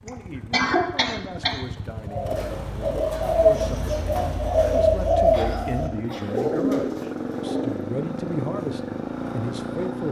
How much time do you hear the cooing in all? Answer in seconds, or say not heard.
6 s.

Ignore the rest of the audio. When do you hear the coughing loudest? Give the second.
1 s.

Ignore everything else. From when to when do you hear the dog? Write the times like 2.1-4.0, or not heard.
not heard.